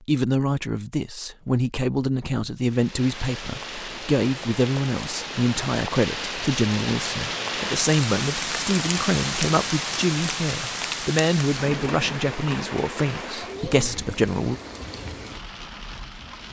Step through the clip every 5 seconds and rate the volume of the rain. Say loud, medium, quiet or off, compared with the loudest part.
medium, loud, loud, medium.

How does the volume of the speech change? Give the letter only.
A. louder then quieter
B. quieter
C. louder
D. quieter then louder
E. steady
E.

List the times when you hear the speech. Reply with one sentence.
The speech can be heard from 0.1 to 14.6 s.